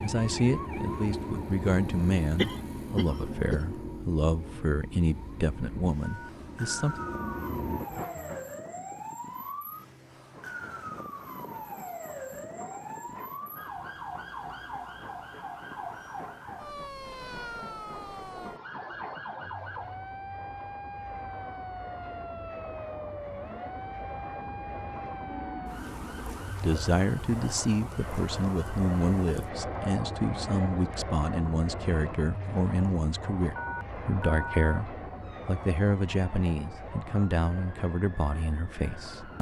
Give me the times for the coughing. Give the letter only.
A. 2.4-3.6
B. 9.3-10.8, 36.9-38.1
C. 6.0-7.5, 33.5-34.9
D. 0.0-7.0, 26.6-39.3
A.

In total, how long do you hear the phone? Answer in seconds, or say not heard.
3 s.